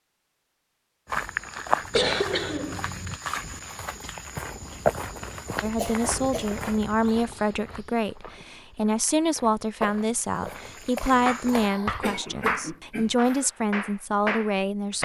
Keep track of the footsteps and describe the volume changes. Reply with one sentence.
The volume of the footsteps goes down, then up.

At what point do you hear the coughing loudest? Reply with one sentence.
The volume of the coughing peaks at 2 seconds.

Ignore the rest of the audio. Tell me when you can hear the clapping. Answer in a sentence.
The clapping can be heard from 11.2 to 15.0 s.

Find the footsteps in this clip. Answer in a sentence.
You can hear the footsteps from 1.1 to 11.7 s.